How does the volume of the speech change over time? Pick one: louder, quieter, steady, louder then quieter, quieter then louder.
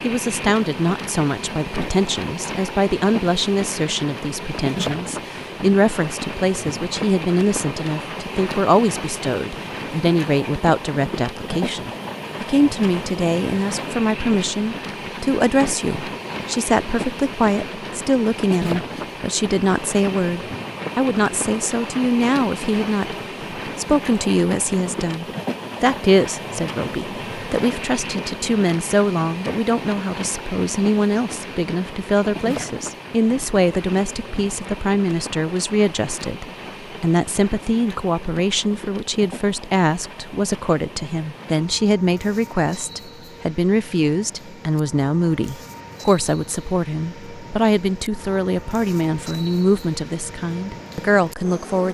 steady.